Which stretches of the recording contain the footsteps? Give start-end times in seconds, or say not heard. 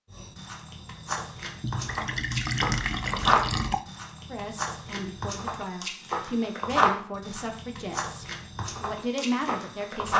0.1-10.1.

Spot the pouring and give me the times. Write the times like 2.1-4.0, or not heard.
1.6-3.9.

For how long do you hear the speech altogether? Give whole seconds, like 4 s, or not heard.
6 s.